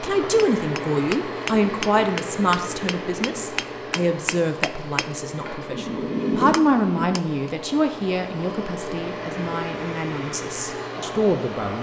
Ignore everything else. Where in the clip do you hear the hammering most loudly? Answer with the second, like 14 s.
6 s.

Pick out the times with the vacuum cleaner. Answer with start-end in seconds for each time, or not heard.
0.0-11.7.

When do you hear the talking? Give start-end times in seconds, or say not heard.
0.0-11.7.